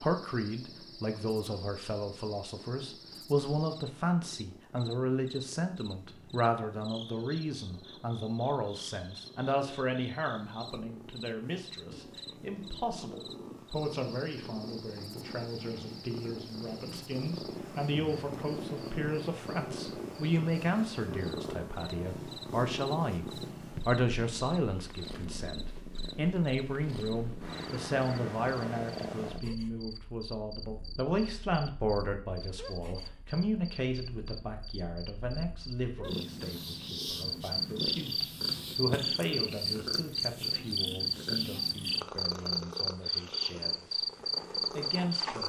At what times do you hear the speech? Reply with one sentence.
You can hear the speech from 0.0 to 44.0 s and from 44.7 to 45.4 s.